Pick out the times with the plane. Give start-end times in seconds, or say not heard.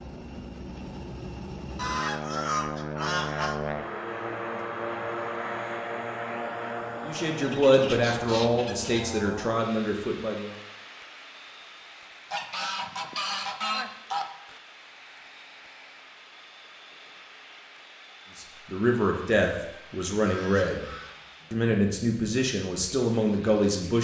0.0-23.9.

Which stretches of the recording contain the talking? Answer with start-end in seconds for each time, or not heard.
7.0-10.6, 18.4-20.9, 21.5-23.9.